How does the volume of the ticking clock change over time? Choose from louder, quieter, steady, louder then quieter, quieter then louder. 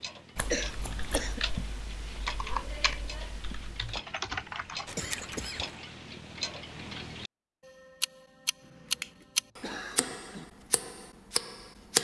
louder.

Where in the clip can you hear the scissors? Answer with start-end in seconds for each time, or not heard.
0.3-1.4, 4.8-5.7, 8.7-9.2.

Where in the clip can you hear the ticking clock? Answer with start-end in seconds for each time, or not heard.
0.0-11.9.